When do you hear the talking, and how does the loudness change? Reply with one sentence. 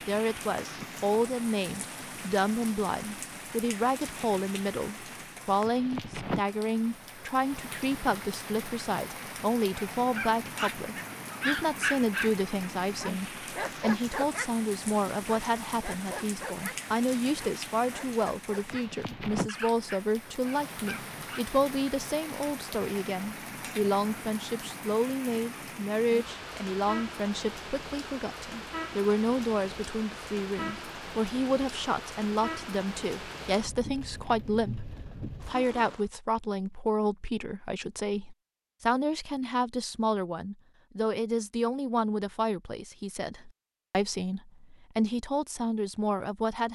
You can hear the talking from 0.1 to 46.6 s, at a steady volume.